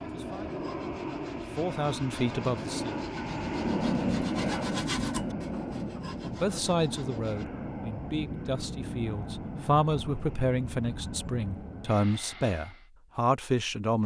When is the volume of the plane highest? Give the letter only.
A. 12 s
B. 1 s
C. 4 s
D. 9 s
C.